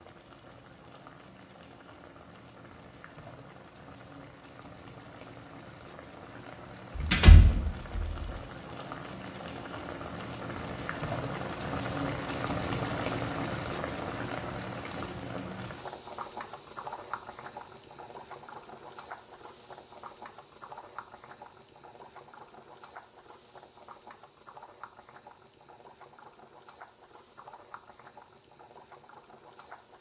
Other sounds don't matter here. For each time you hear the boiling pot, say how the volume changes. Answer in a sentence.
You can hear the boiling pot from 0.0 to 29.9 s, getting louder then quieter.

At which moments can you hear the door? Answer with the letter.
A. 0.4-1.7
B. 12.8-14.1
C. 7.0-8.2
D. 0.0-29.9
C.